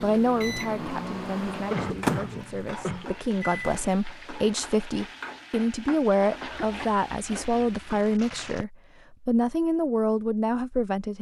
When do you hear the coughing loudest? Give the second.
2 s.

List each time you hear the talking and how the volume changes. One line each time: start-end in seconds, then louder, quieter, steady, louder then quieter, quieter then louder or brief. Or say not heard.
0.0-11.1 louder.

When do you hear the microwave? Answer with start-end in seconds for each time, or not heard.
0.0-3.9.